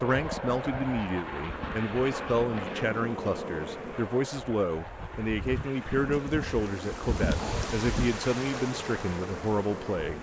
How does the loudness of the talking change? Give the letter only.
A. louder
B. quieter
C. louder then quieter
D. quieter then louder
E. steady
E.